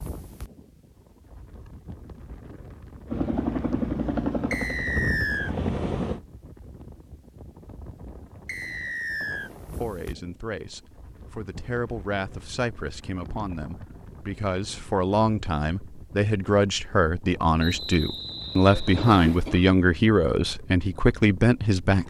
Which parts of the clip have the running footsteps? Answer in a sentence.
You can't hear the running footsteps here.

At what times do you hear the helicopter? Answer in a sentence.
You can hear the helicopter from 3.0 to 6.2 s.